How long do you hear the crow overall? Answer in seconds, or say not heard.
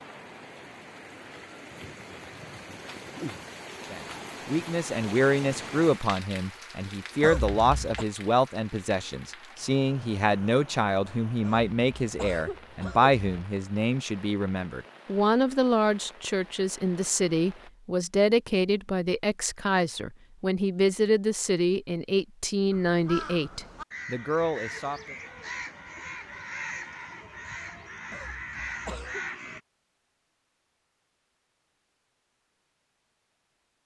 7 s.